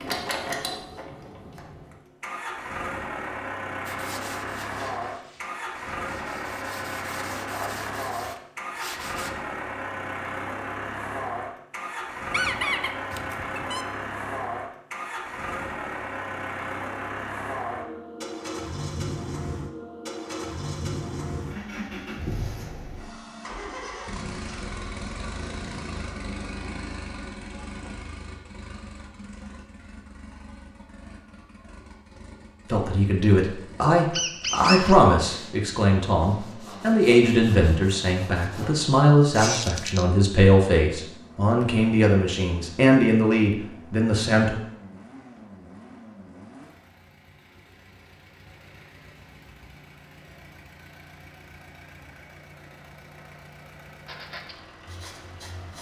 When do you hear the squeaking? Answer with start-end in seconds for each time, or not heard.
12.3-13.8, 34.1-35.0, 39.4-40.0.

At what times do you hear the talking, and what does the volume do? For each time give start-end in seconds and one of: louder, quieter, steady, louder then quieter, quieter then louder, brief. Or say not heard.
32.7-44.5 steady.